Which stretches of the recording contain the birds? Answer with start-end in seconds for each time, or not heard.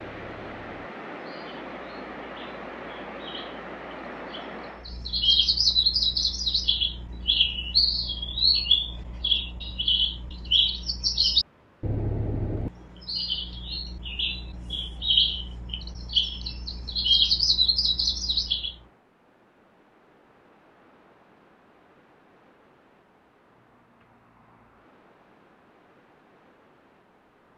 0.0-18.8.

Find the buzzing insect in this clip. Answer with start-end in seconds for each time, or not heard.
not heard.